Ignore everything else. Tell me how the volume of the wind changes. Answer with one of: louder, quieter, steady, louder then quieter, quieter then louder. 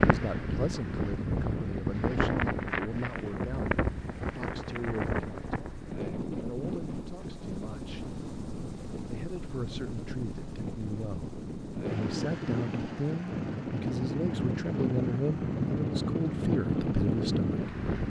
quieter then louder.